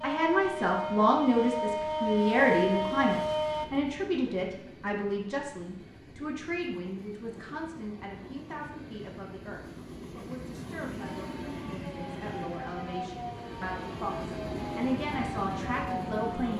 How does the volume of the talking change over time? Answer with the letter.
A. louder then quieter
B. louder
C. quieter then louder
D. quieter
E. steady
C.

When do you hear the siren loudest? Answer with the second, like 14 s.
3 s.